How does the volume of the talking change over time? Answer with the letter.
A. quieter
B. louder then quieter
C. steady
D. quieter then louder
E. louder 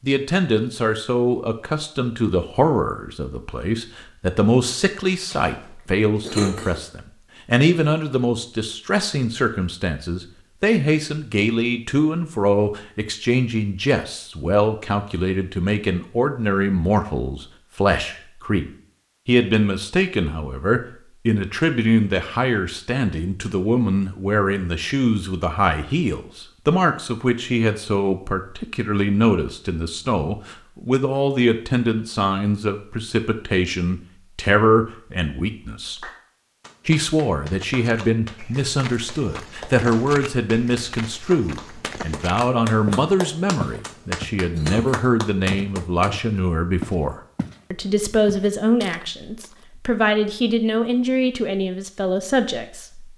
C.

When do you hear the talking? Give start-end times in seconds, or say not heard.
0.0-18.6, 19.2-36.0, 36.9-53.1.